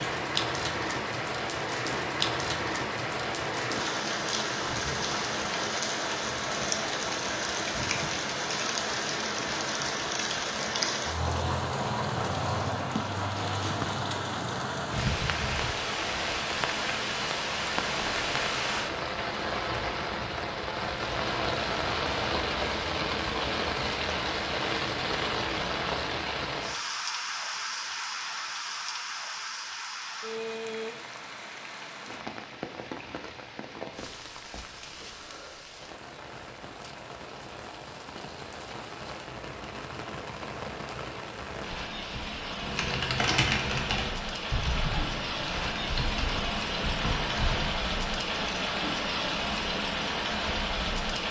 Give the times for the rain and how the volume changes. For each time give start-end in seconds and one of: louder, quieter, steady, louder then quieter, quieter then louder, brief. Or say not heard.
0.0-51.2 quieter then louder.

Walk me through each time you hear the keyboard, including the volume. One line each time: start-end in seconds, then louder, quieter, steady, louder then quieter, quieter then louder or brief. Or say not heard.
42.6-47.8 quieter.